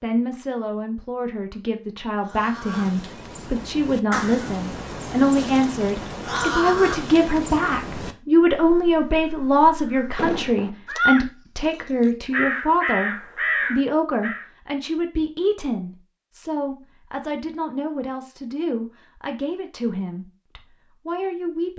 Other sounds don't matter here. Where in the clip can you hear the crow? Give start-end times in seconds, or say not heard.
2.2-14.4.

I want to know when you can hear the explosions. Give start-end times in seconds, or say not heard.
10.2-10.7.